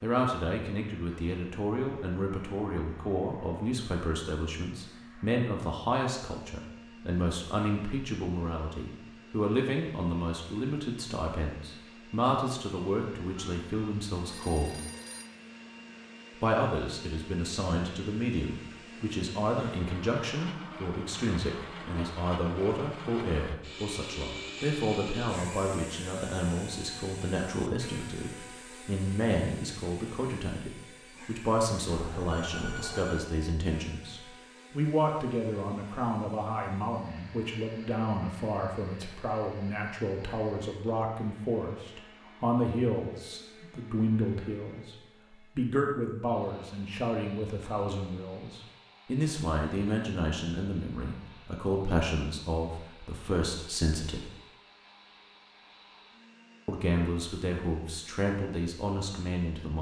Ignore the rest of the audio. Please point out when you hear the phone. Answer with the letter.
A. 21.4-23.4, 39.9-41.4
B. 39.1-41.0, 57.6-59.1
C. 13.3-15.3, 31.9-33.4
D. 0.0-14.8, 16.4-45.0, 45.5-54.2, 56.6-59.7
C.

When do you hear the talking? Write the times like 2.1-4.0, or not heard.
0.0-14.8, 16.4-45.0, 45.5-54.2, 56.6-59.7.